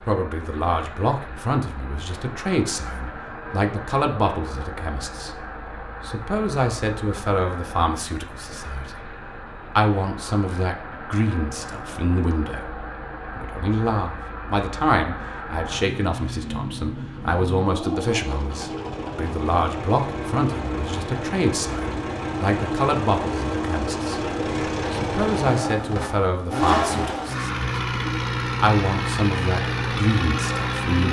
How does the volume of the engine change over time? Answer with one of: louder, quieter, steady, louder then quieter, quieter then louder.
louder.